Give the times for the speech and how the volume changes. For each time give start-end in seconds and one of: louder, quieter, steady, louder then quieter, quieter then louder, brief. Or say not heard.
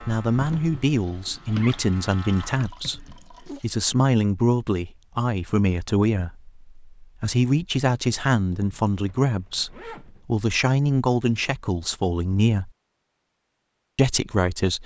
0.1-12.7 steady
13.9-14.8 brief.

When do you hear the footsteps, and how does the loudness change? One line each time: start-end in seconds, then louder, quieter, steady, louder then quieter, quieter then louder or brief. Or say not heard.
not heard.